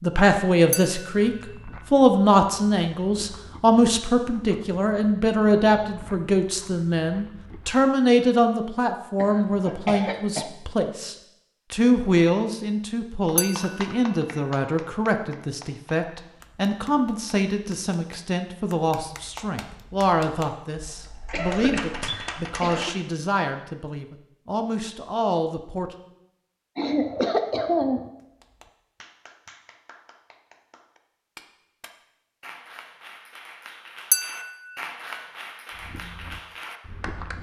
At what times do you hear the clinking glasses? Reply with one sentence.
You can hear the clinking glasses from 0.7 to 1.3 s, from 13.3 to 13.9 s and from 34.1 to 34.7 s.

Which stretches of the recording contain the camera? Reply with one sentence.
You can't hear the camera here.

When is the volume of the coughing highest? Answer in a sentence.
The volume of the coughing peaks at 28 seconds.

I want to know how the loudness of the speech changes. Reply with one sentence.
The volume of the speech goes down.